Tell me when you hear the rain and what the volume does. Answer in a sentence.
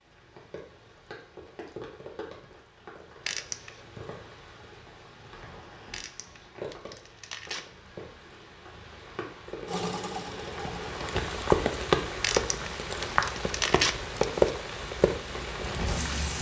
You can hear the rain from 0.0 to 16.3 s, getting louder.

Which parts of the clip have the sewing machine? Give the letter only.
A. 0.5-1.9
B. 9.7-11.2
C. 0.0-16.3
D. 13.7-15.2
B.